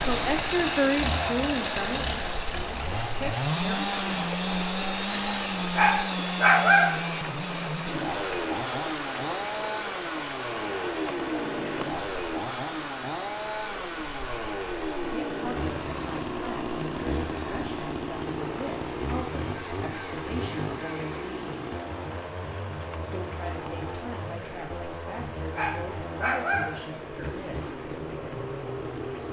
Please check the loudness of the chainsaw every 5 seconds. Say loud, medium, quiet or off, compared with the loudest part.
loud, loud, loud, loud, medium, medium.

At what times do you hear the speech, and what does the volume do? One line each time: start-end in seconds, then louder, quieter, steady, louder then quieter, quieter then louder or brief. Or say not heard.
0.0-4.0 quieter then louder
15.1-21.6 steady
23.1-27.8 steady.